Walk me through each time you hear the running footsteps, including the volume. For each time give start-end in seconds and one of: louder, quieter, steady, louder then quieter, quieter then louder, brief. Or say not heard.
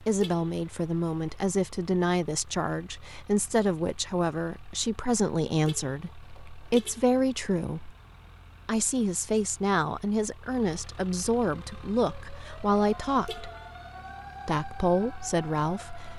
not heard.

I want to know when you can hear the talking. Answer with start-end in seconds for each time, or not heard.
0.0-8.0, 8.7-13.5, 14.4-16.1.